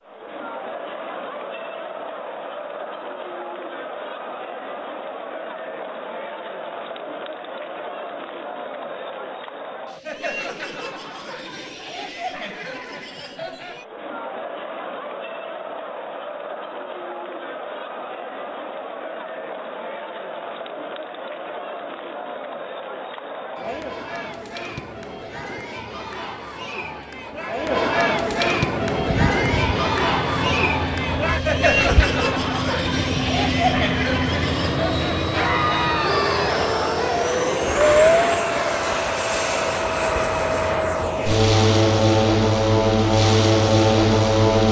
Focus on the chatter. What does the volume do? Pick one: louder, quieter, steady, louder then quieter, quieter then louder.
louder.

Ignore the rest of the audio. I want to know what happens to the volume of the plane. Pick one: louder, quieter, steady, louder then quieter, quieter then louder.
louder.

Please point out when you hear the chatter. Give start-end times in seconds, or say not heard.
0.0-37.4.